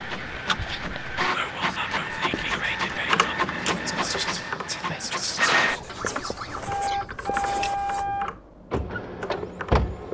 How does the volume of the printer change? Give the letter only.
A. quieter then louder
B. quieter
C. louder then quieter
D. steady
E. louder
D.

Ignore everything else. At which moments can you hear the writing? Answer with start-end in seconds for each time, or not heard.
2.3-2.9, 5.7-8.2.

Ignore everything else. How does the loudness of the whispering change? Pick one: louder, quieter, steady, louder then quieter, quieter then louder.
steady.